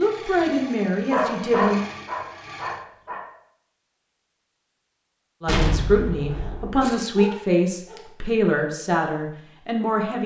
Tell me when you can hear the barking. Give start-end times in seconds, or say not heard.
1.1-3.2, 6.3-8.1.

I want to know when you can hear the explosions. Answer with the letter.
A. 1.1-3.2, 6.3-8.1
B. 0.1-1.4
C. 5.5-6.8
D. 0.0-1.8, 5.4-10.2
C.